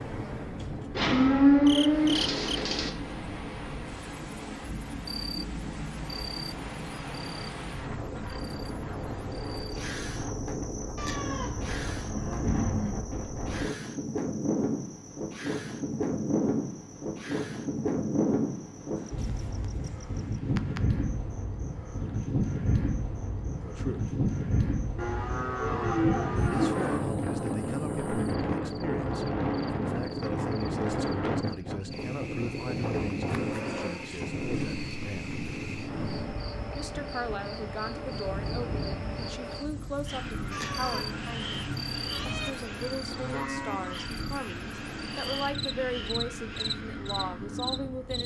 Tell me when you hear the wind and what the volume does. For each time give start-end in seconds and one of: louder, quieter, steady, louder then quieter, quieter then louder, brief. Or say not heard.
0.0-48.2 louder then quieter.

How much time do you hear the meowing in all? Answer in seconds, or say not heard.
3 s.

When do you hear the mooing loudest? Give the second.
2 s.